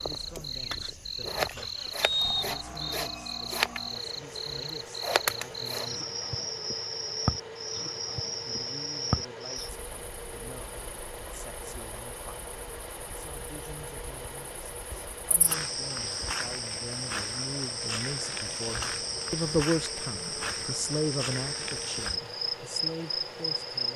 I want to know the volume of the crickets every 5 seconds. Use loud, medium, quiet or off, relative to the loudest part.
loud, loud, quiet, loud, loud.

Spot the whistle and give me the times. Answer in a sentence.
You can hear the whistle from 2.0 to 3.0 s.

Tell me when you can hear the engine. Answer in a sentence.
You can hear the engine from 0.0 to 23.9 s.